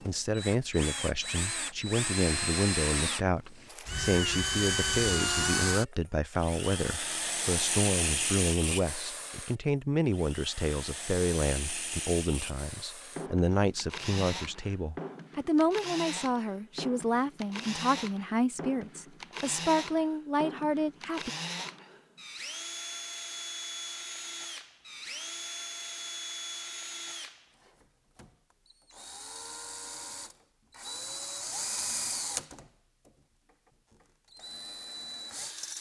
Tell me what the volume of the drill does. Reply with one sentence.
The loudness of the drill goes down.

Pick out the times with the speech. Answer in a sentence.
The speech can be heard from 0.1 to 21.3 s.